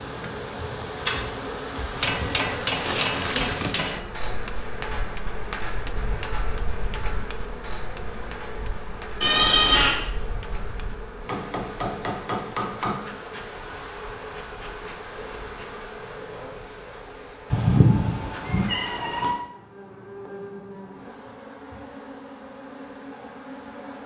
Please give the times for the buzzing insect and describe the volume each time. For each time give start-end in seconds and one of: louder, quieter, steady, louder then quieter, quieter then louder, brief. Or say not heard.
0.0-24.0 quieter.